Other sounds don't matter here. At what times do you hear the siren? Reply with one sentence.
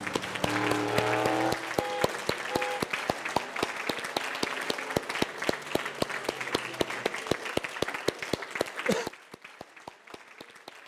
You can't hear the siren here.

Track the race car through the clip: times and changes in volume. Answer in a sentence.
You can hear the race car from 0.0 to 7.2 s, getting quieter.